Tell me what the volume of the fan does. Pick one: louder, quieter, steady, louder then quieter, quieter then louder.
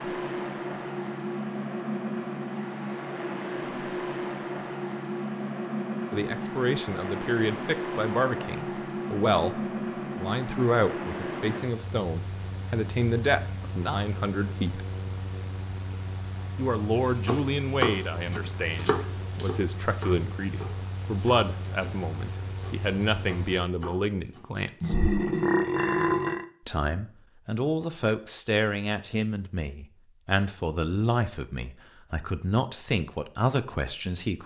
quieter.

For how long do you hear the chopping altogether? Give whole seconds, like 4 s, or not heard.
7 s.